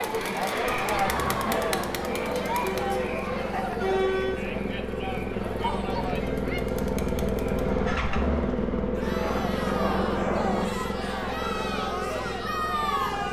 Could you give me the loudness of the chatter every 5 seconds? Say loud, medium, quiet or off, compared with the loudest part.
loud, medium, loud.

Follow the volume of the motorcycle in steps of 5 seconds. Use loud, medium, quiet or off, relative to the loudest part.
medium, loud, medium.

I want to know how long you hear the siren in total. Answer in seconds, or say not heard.
not heard.